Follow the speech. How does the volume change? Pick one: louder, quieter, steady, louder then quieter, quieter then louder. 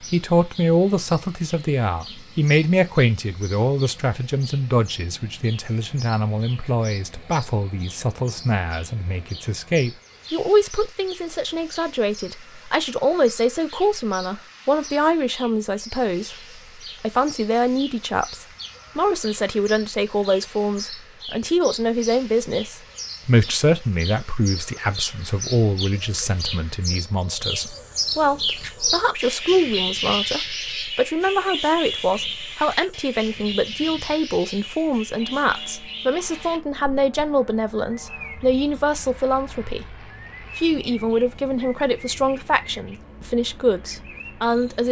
steady.